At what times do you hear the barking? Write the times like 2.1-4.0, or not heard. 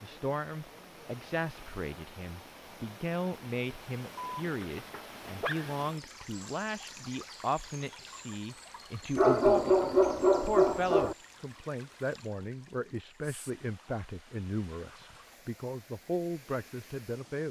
4.4-5.8, 9.2-11.2.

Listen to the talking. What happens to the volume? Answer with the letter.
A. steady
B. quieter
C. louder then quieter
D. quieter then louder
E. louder
A.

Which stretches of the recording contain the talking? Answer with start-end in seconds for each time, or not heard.
0.0-17.4.